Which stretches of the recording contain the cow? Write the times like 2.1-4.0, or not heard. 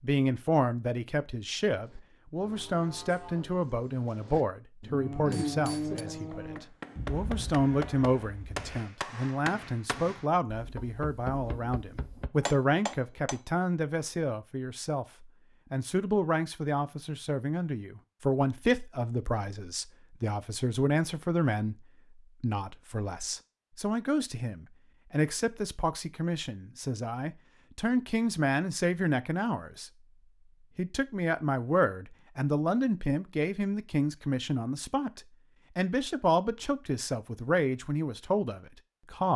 1.8-8.8.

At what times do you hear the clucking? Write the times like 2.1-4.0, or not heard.
not heard.